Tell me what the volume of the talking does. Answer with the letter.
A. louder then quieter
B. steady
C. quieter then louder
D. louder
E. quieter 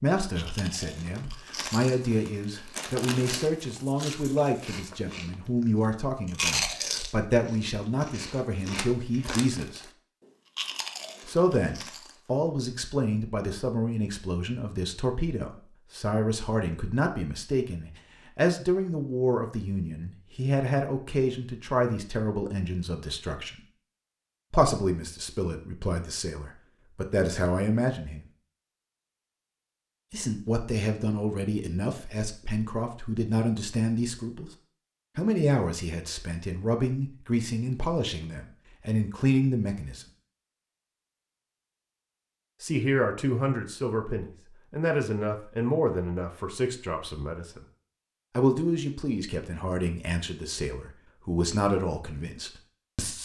B.